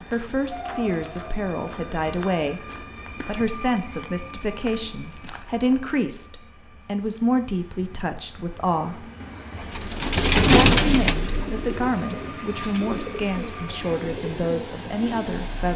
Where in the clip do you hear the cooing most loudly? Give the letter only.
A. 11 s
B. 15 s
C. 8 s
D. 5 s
A.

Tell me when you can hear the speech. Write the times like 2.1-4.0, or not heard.
0.1-2.6, 3.2-9.1, 10.3-15.7.